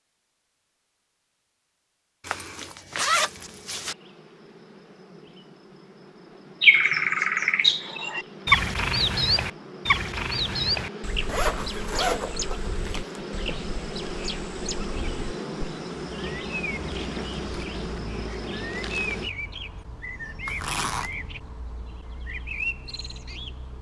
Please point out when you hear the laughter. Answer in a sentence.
You can't hear the laughter here.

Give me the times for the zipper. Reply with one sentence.
You can hear the zipper from 2.2 to 4.0 s, from 11.2 to 13.1 s and from 20.4 to 21.1 s.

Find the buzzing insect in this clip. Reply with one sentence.
You can hear the buzzing insect from 3.0 to 19.3 s.